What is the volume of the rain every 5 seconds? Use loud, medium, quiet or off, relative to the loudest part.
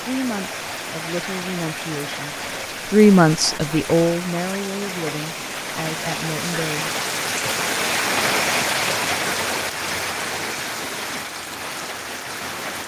medium, loud, medium.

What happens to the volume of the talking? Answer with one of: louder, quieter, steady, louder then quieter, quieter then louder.
louder then quieter.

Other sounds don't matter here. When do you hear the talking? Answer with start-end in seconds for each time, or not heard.
0.0-6.9.